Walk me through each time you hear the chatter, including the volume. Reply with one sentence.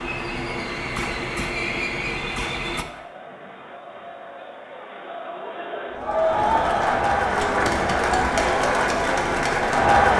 The chatter can be heard from 0.0 to 10.1 s, getting louder.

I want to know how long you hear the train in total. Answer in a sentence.
You can hear the train for 3 seconds altogether.